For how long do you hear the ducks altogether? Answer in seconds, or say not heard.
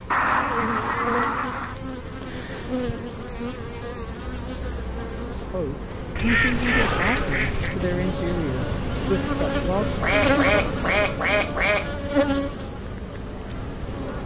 5 s.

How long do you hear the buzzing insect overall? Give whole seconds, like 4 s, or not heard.
14 s.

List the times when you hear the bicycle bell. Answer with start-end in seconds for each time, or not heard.
not heard.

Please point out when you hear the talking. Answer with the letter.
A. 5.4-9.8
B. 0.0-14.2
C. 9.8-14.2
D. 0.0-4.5
A.